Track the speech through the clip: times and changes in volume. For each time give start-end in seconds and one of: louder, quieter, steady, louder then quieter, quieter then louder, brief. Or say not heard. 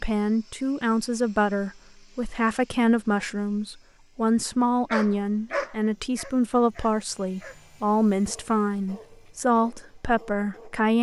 0.0-10.9 steady.